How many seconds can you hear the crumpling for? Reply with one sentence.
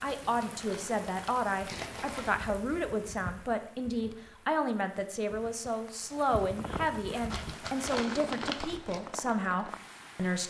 The crumpling can be heard for 4 seconds in total.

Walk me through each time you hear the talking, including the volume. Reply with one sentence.
You can hear the talking from 0.0 to 10.4 s, at a steady volume.